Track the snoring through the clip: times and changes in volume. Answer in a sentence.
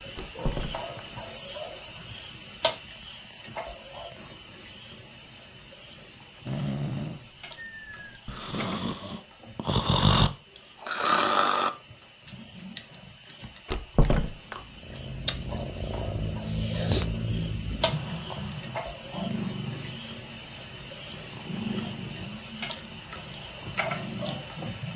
The snoring can be heard from 6.5 to 11.7 s, getting louder.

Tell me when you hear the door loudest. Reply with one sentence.
The loudest moment of the door is at 14 seconds.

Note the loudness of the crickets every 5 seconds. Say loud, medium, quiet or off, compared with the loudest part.
loud, medium, medium, loud, loud.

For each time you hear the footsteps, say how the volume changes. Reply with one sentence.
The footsteps can't be heard in this clip.